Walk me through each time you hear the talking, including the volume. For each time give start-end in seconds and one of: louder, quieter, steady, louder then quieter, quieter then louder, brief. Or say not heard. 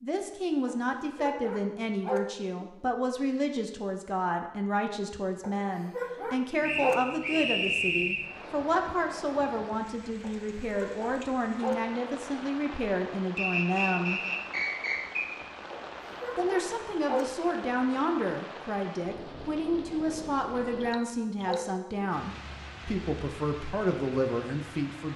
0.0-14.2 steady
16.4-25.1 steady.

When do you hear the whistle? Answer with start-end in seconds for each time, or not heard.
6.6-8.2, 13.3-15.3.